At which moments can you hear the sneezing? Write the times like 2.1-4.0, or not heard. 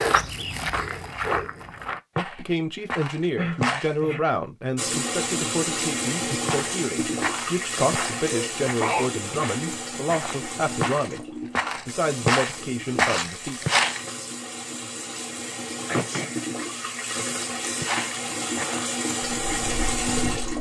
3.4-4.2, 8.2-9.1, 15.8-16.4.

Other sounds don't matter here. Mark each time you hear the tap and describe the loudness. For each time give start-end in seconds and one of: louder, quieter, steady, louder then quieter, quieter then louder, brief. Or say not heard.
4.8-20.5 quieter then louder.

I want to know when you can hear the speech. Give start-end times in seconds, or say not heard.
2.1-13.7.